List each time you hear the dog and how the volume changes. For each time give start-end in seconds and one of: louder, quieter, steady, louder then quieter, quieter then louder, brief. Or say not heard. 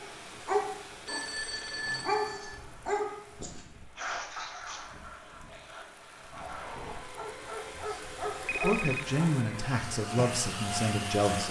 0.0-9.3 quieter then louder.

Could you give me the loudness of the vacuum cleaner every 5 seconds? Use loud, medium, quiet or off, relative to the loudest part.
off, medium, loud.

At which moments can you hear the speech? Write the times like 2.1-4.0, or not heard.
7.8-11.4.